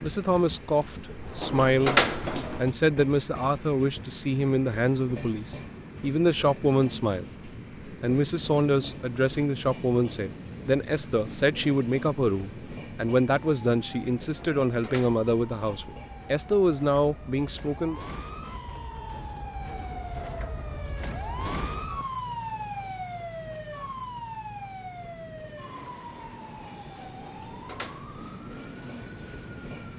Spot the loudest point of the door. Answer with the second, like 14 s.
2 s.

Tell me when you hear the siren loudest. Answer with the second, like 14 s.
22 s.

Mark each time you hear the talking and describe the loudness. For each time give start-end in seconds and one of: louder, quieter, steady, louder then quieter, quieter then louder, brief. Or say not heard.
0.0-18.0 steady.